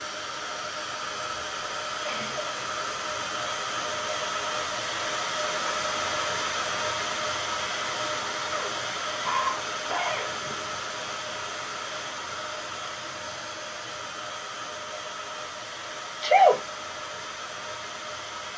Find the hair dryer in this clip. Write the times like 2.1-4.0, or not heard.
0.0-18.5.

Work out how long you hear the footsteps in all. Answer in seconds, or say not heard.
not heard.